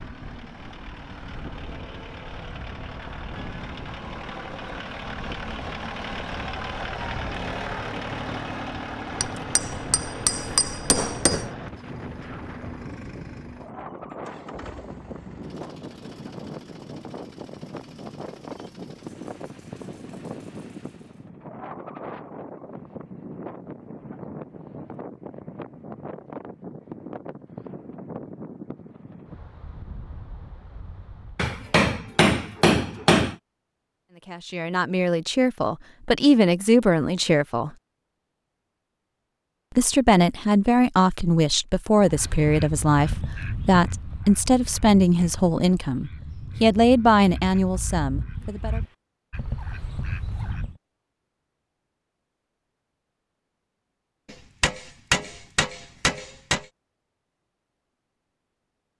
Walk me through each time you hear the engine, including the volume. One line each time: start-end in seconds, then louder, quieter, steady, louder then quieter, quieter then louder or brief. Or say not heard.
0.0-21.3 louder then quieter.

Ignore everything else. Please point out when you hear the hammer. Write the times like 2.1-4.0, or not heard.
9.2-11.5, 31.4-33.4, 54.3-56.6.